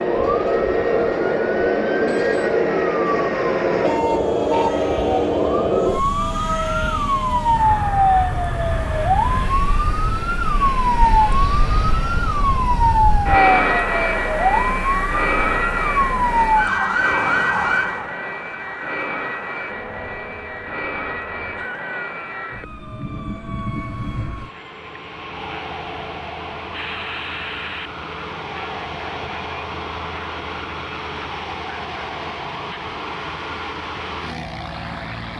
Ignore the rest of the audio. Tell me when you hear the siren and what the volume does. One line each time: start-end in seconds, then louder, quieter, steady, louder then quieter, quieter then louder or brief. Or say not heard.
0.0-35.3 quieter.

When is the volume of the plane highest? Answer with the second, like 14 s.
14 s.